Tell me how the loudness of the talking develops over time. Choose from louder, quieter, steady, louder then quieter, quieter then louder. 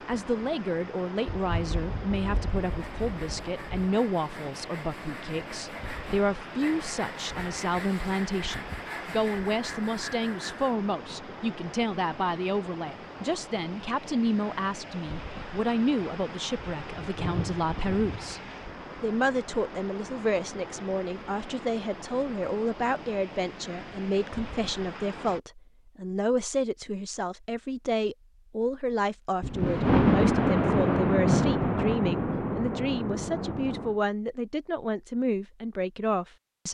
steady.